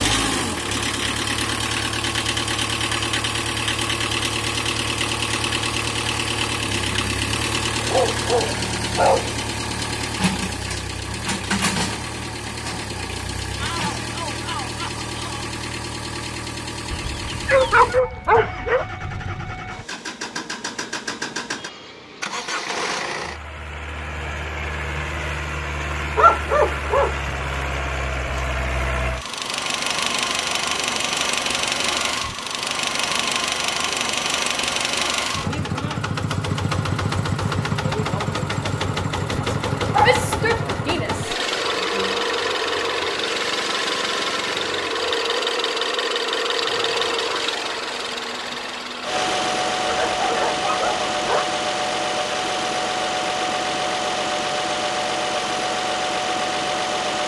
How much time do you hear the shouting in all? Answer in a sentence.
The shouting can be heard for 4 seconds in total.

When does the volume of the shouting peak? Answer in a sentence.
The volume of the shouting peaks at 40 seconds.